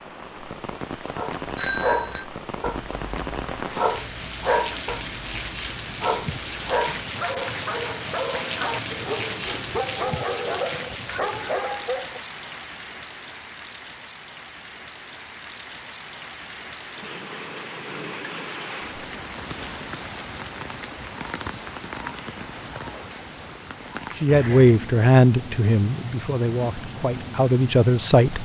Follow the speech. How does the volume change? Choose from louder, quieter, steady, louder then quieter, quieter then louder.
quieter then louder.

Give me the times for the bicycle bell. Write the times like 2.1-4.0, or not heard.
1.6-2.2.